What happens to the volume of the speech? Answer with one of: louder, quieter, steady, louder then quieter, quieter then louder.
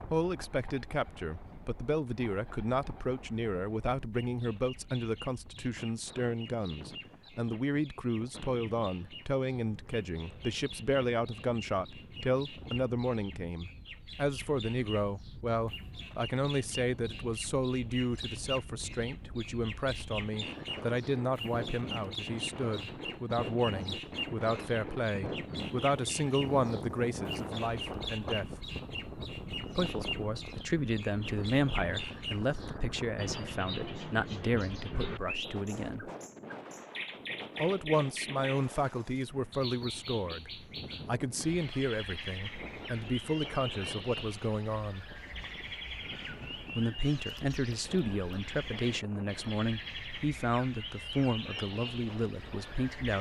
steady.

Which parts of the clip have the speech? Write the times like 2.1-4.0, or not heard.
0.1-28.6, 29.8-36.1, 37.6-45.0, 46.8-53.1.